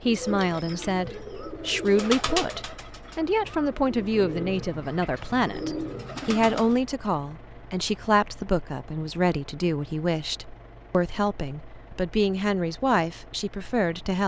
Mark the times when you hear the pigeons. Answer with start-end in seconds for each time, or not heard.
0.0-6.8.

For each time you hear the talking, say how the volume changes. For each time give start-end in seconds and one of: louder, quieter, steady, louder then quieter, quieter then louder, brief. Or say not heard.
0.0-14.2 steady.